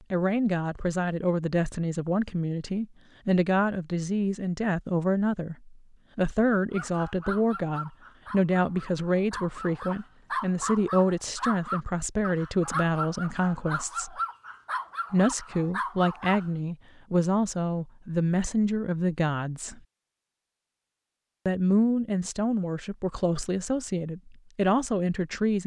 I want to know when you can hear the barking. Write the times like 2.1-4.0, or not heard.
6.7-16.5.